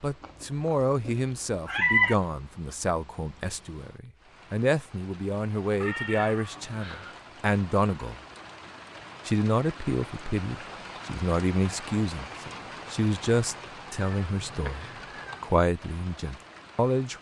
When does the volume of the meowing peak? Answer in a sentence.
The loudest moment of the meowing is at 2 seconds.